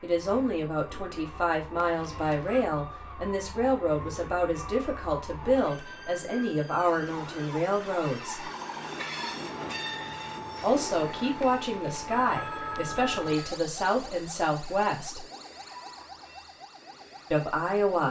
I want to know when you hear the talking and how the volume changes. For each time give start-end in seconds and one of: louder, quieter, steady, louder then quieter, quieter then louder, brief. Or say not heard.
0.0-8.4 steady
10.6-15.2 steady
17.3-18.0 brief.